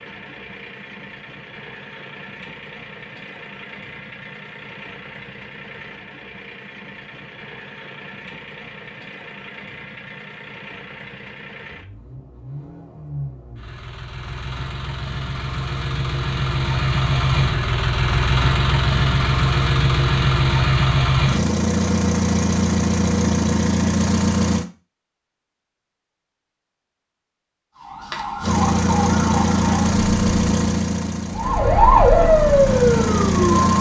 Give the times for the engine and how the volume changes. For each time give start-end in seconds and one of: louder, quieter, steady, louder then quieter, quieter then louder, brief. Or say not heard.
0.0-24.6 louder
28.4-33.7 quieter then louder.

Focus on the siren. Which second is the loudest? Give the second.
32 s.